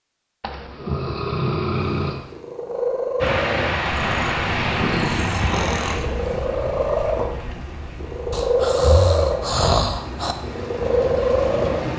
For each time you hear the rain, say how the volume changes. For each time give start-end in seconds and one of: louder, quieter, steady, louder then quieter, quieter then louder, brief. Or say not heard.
3.2-11.9 quieter then louder.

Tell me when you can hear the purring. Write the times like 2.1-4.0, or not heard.
2.0-11.9.